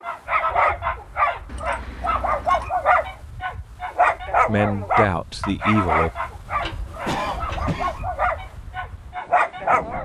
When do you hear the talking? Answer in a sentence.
You can hear the talking from 4.4 to 6.1 s.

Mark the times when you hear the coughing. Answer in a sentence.
The coughing can be heard from 7.0 to 8.1 s.